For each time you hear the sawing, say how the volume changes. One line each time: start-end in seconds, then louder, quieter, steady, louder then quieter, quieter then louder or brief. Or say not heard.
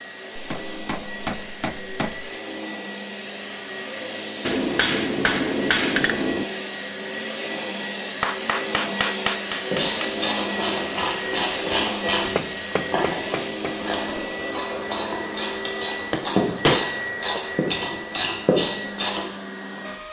not heard.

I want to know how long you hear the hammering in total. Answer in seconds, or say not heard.
9 s.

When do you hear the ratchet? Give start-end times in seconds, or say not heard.
9.7-19.2.